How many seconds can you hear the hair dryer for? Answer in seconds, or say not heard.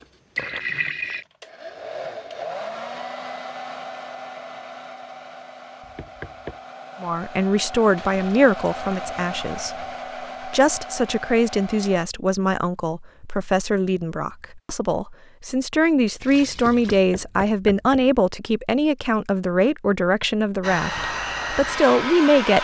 14 s.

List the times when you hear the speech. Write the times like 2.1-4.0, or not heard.
7.0-22.5.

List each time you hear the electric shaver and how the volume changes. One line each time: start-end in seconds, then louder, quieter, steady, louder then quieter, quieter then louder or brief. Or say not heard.
not heard.